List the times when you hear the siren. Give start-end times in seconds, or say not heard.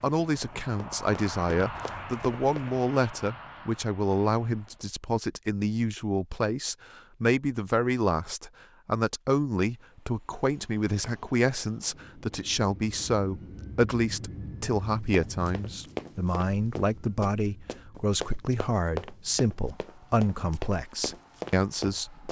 not heard.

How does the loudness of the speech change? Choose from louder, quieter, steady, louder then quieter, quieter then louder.
steady.